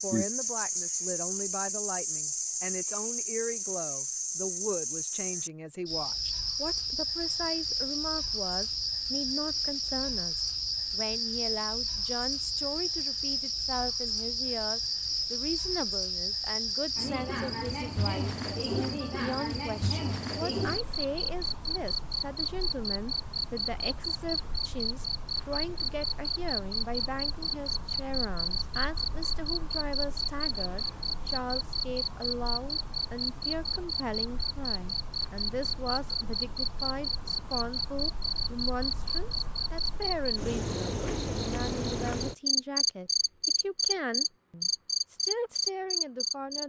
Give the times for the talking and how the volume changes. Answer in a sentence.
The talking can be heard from 0.0 to 46.6 s, at a steady volume.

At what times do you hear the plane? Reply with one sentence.
The plane can't be heard in this clip.